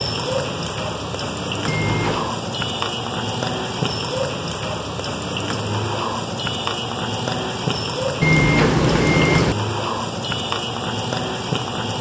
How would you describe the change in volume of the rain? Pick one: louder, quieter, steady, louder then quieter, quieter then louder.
steady.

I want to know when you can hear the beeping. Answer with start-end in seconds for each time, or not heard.
1.6-2.4, 8.2-9.6.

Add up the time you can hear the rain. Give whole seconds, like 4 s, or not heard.
12 s.